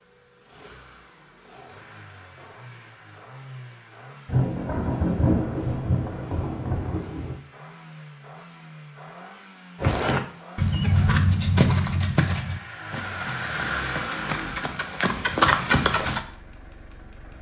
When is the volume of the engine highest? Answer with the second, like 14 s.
14 s.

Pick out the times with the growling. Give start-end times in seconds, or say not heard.
not heard.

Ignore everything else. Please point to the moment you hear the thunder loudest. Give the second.
5 s.